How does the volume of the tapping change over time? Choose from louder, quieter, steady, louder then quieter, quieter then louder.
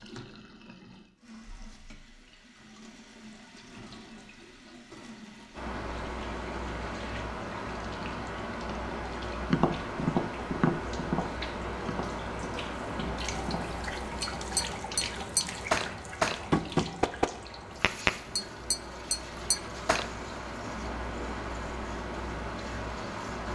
quieter then louder.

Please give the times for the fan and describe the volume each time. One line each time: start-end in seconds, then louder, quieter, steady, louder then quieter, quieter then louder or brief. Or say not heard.
5.5-23.5 quieter then louder.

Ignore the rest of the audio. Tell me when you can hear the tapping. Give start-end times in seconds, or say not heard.
9.4-20.1.